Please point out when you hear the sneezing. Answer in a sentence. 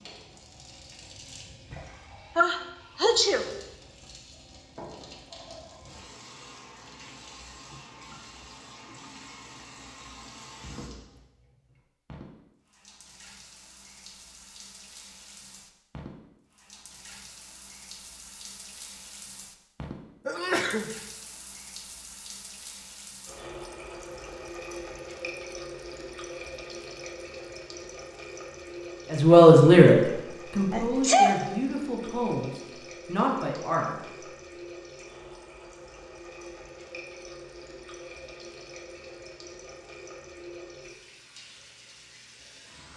The sneezing can be heard from 2.4 to 3.5 s, from 20.2 to 20.9 s and from 30.7 to 31.4 s.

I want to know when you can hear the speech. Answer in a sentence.
You can hear the speech from 29.1 to 34.0 s.